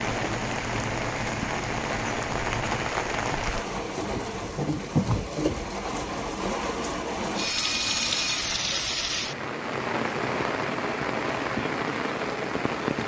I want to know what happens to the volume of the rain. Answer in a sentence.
The volume of the rain stays about the same.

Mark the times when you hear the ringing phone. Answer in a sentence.
The ringing phone can be heard from 7.3 to 8.4 s.